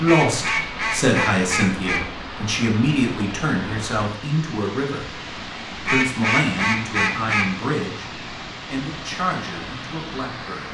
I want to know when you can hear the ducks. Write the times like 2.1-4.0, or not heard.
0.1-2.0, 5.8-7.6.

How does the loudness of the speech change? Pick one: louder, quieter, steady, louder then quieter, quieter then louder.
quieter.